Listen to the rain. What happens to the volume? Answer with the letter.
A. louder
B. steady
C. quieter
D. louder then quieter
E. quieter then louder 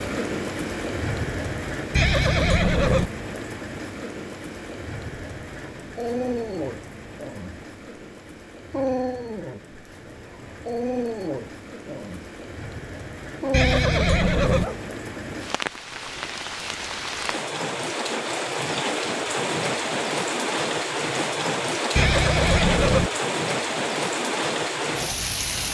E.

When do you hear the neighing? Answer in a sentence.
The neighing can be heard from 1.9 to 3.1 s, from 13.5 to 14.7 s and from 21.9 to 23.1 s.